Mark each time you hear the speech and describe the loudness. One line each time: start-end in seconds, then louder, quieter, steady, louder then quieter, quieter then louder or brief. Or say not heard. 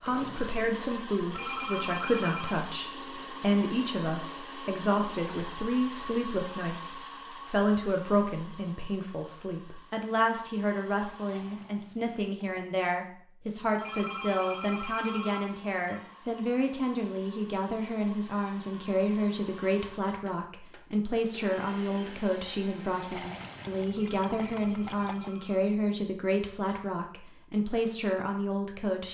0.0-29.0 steady.